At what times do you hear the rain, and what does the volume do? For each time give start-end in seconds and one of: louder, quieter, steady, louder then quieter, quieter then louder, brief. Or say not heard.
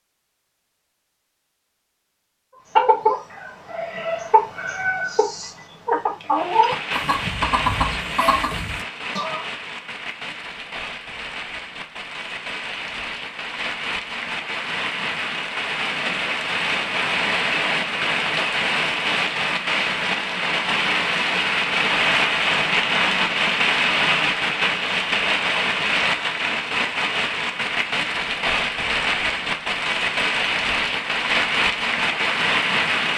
6.3-33.1 louder.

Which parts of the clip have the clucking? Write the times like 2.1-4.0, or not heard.
2.8-9.4.